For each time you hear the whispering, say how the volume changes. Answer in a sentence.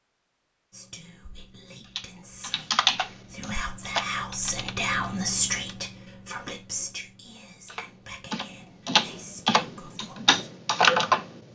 The whispering can be heard from 0.7 to 10.3 s, getting louder then quieter.